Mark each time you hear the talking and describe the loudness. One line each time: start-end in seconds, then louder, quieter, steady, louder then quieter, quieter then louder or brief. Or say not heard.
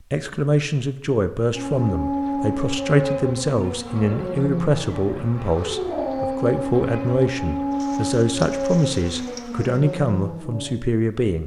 0.1-11.4 steady.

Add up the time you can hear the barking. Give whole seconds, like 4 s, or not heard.
9 s.